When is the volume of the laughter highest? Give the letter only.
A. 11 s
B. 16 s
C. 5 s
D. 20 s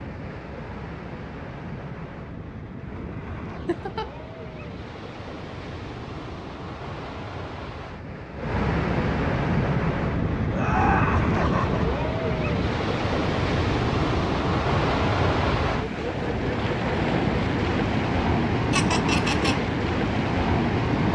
A.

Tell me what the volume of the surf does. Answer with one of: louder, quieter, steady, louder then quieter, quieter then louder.
louder.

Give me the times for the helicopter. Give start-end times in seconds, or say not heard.
not heard.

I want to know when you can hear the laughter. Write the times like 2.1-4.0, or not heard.
3.6-4.1, 10.5-12.0, 18.7-19.6.